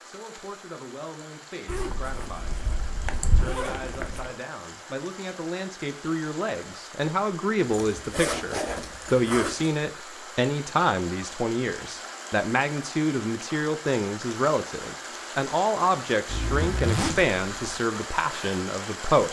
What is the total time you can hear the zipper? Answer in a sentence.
The zipper can be heard for 6 seconds in total.